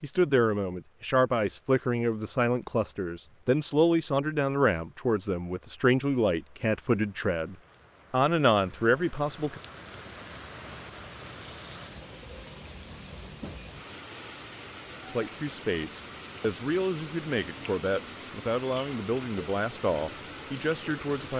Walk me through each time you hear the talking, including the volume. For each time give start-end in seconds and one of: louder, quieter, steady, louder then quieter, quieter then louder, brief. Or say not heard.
0.0-9.6 steady
15.1-21.3 steady.